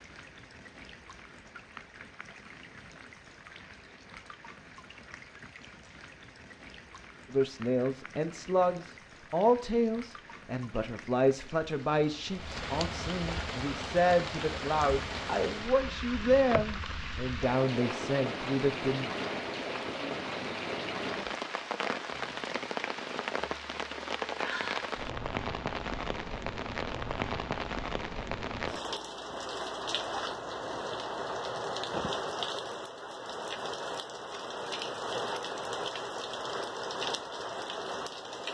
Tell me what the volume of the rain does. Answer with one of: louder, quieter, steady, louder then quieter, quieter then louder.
louder.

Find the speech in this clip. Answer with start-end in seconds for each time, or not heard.
7.3-19.1.